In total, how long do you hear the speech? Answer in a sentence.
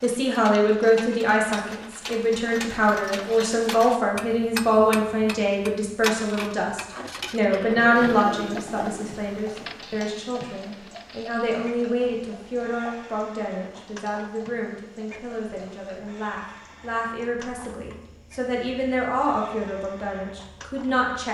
The speech can be heard for 21 seconds in total.